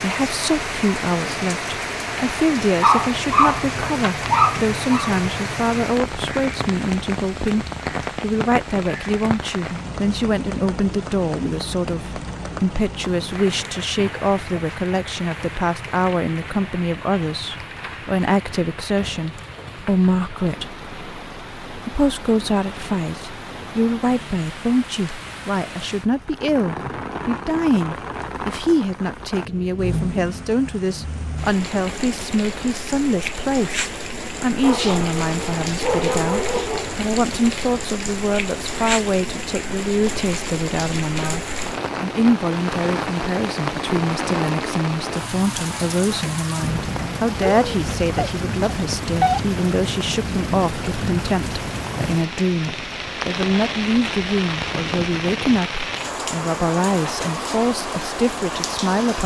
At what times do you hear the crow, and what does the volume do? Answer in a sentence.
The crow can't be heard in this clip.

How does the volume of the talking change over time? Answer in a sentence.
The volume of the talking stays about the same.